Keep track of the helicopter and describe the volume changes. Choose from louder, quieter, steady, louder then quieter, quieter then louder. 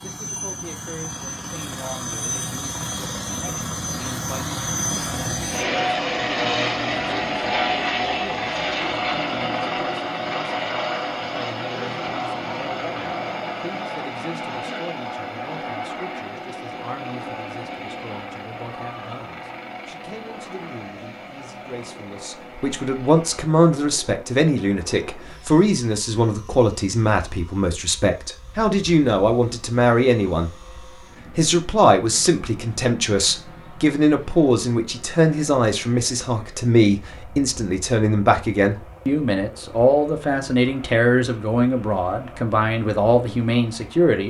quieter.